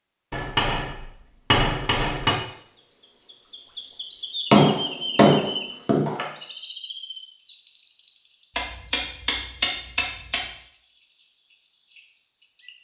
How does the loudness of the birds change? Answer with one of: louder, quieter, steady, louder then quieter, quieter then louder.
quieter then louder.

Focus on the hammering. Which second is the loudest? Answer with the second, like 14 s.
5 s.